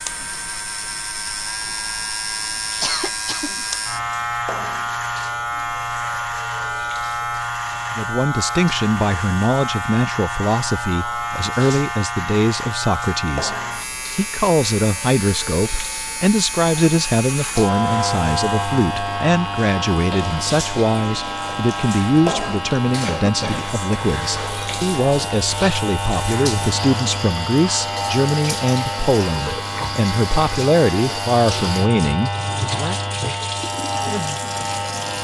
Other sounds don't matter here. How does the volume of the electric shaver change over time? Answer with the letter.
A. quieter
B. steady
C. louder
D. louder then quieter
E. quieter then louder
B.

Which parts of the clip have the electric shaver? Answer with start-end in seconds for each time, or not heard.
0.0-35.1.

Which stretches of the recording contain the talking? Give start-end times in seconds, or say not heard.
7.9-13.6, 14.2-33.0.